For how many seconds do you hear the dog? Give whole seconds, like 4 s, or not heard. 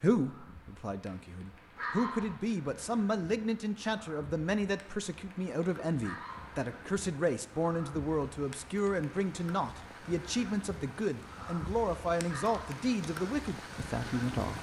2 s.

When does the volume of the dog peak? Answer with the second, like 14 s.
2 s.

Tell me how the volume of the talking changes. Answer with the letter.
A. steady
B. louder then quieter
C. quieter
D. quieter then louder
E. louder
A.